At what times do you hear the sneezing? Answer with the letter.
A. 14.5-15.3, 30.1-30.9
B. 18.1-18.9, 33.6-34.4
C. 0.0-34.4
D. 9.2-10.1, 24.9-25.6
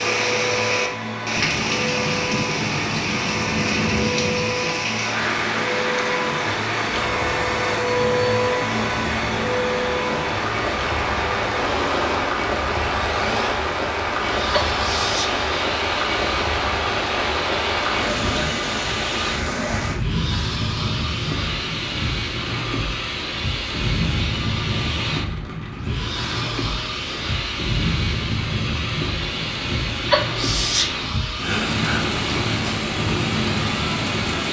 A.